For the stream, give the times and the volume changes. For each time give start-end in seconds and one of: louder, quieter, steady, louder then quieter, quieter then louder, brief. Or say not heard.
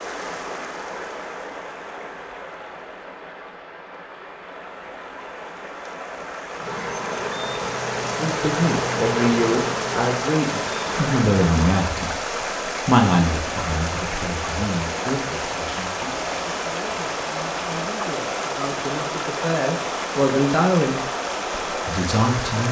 0.0-22.6 louder.